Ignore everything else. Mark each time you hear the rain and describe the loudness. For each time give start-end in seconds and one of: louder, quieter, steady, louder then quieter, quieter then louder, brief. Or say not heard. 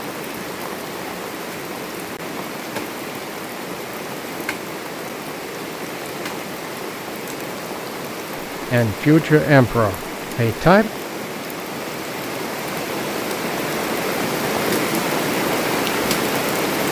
0.0-16.8 louder.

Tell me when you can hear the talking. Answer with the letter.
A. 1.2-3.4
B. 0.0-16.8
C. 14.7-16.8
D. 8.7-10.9
D.